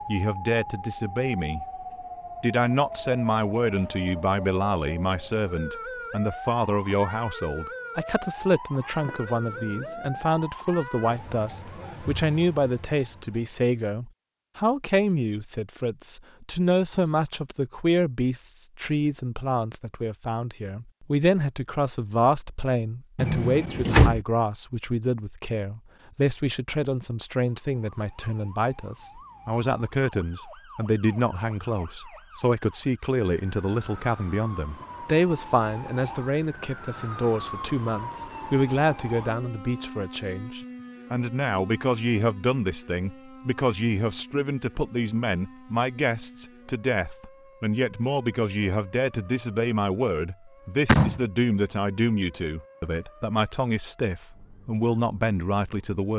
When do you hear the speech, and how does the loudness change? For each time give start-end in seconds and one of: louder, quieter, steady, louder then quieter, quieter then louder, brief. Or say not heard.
0.1-1.6 brief
2.4-56.1 steady.